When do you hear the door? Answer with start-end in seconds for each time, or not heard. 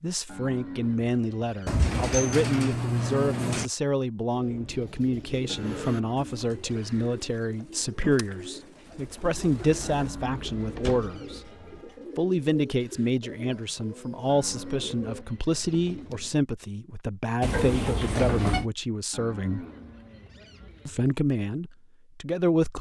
1.6-3.7, 9.2-11.2, 17.4-18.6.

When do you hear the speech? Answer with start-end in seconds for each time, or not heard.
0.0-11.5, 12.2-19.6, 20.9-22.7.